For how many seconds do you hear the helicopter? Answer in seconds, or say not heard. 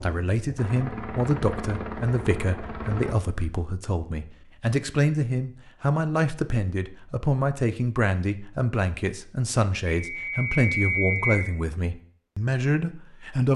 3 s.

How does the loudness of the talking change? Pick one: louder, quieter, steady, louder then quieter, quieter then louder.
steady.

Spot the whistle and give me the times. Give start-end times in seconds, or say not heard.
9.8-11.4.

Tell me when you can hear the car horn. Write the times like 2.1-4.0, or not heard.
not heard.